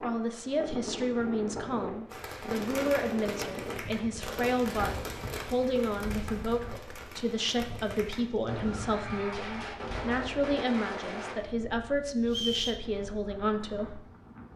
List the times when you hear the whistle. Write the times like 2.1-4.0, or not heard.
12.2-12.8.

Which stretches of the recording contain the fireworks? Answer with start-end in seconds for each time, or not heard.
2.1-11.3.